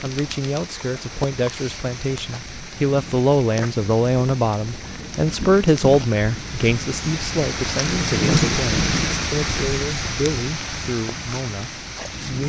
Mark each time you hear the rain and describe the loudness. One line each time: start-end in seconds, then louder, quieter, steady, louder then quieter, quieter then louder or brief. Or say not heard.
0.0-12.4 louder then quieter.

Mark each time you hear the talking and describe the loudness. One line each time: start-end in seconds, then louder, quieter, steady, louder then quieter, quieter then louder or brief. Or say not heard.
0.0-12.4 louder then quieter.